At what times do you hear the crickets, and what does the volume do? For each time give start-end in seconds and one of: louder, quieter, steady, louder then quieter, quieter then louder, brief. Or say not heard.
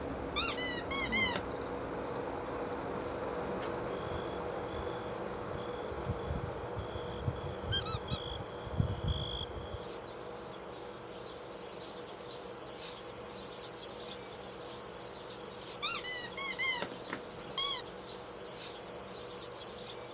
0.0-20.0 louder.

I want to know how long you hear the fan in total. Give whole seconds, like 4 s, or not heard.
20 s.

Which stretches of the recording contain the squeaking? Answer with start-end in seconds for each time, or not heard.
0.3-1.4, 7.7-8.2, 15.8-17.9.